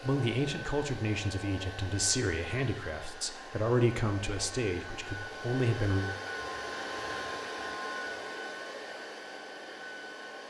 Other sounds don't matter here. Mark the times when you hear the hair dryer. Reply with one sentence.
The hair dryer can be heard from 0.0 to 10.4 s.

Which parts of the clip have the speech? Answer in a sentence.
You can hear the speech from 0.0 to 6.0 s.